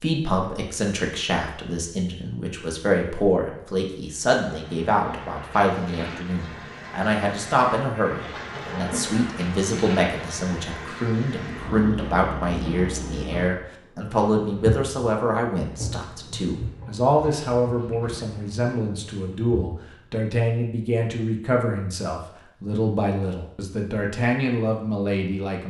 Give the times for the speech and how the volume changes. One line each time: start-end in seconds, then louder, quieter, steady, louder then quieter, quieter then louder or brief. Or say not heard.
0.0-25.6 steady.